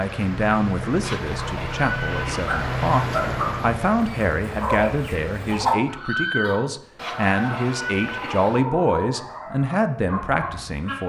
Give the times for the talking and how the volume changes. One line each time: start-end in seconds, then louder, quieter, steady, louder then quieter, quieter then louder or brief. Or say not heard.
0.0-11.0 steady.